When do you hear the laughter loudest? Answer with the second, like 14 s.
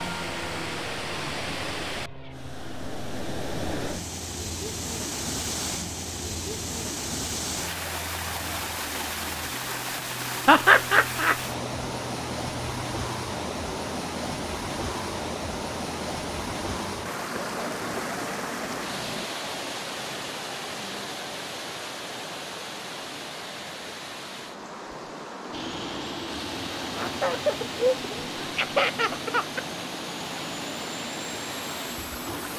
11 s.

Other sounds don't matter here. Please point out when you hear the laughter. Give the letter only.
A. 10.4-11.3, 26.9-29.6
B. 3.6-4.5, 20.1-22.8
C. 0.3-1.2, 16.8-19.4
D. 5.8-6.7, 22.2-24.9
A.